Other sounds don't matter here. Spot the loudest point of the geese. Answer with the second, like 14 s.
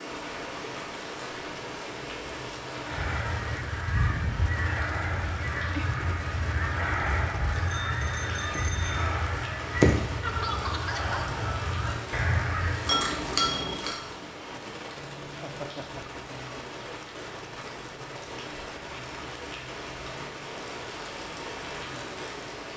10 s.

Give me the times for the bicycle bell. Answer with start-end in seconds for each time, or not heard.
7.8-9.1, 12.8-13.9.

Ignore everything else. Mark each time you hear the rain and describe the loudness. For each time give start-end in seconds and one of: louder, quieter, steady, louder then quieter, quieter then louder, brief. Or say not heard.
0.0-22.7 steady.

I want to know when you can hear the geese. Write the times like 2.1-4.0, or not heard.
2.9-12.9.